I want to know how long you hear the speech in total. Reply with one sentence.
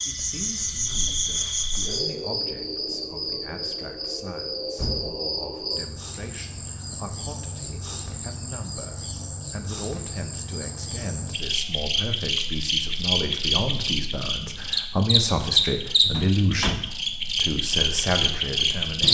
The speech can be heard for 19 seconds in total.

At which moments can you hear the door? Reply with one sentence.
You can hear the door from 4.8 to 5.2 s and from 16.1 to 16.8 s.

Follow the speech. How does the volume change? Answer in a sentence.
The volume of the speech goes up.